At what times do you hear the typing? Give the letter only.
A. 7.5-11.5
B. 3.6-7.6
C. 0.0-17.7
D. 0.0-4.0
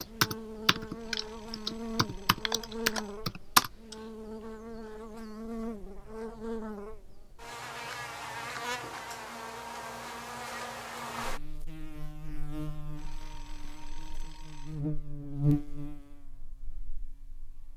D.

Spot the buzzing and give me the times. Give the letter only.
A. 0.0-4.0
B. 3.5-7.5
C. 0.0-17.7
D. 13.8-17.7
C.